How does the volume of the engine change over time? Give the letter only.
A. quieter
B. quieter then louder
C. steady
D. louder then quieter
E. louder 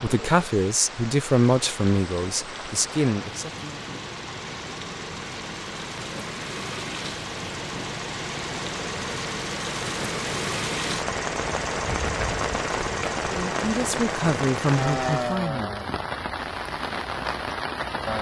E.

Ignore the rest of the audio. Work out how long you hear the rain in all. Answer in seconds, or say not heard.
18 s.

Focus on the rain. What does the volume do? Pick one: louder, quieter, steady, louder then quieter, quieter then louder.
louder.